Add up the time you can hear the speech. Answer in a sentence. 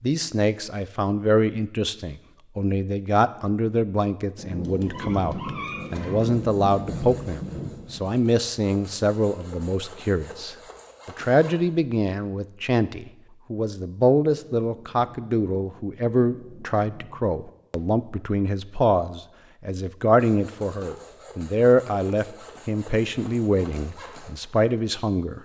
The speech can be heard for 25 seconds in total.